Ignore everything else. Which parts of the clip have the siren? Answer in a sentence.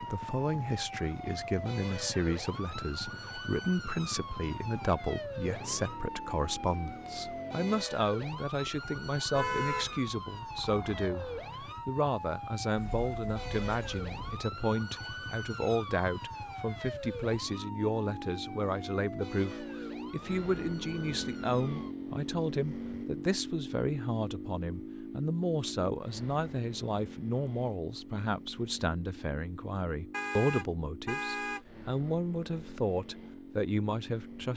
The siren can be heard from 0.0 to 21.9 s.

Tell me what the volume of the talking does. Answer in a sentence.
The volume of the talking stays about the same.